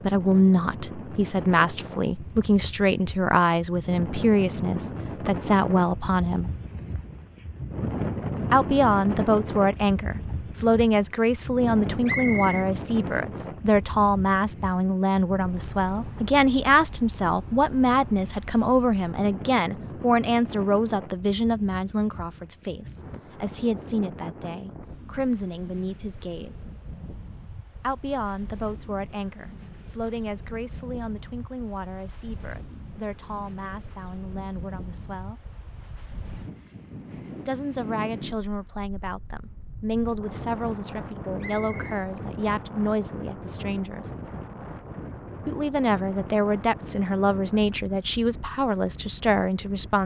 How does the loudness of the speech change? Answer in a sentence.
The loudness of the speech goes down, then up.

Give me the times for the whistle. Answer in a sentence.
You can hear the whistle from 12.1 to 12.7 s and from 41.4 to 42.0 s.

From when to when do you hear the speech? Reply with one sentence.
You can hear the speech from 0.0 to 6.5 s, from 8.5 to 26.6 s, from 27.8 to 35.4 s, from 37.5 to 44.0 s and from 45.5 to 50.0 s.